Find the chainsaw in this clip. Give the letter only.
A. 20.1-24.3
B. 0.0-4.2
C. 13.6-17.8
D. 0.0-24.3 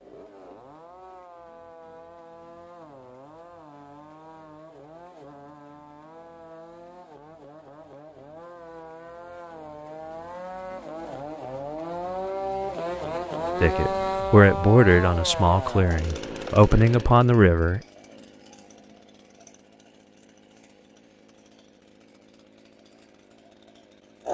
D.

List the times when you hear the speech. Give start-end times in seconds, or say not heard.
13.6-17.8.